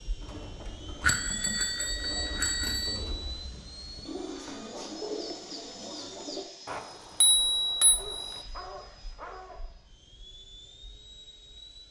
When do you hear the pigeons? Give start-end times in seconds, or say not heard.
0.2-6.5.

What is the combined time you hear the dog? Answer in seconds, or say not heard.
2 s.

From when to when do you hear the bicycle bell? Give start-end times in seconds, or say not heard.
1.0-3.0, 6.7-8.4.